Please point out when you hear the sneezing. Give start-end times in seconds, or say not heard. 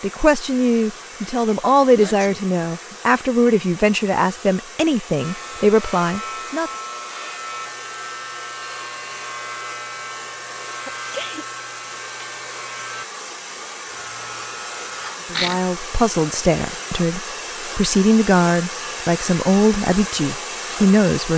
1.9-2.5, 10.8-11.4, 14.9-15.6.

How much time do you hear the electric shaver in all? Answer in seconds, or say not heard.
10 s.